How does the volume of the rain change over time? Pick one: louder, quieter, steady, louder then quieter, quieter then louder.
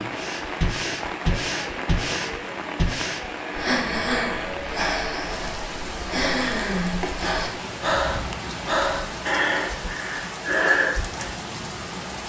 steady.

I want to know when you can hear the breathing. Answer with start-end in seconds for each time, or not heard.
0.1-11.3.